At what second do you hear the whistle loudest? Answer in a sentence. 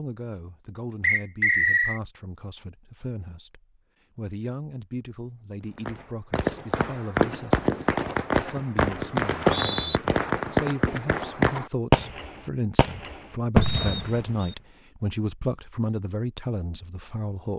The loudest moment of the whistle is at 2 seconds.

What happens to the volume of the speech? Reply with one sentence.
The volume of the speech goes up.